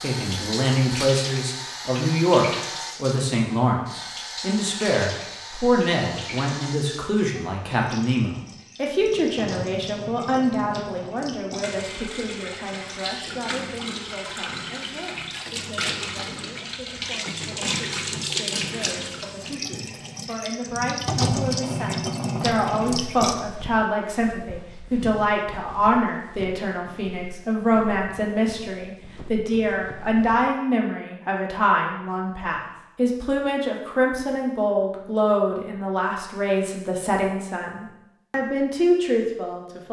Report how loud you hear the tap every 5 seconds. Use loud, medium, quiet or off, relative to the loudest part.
medium, medium, medium, loud, loud, off, off, off.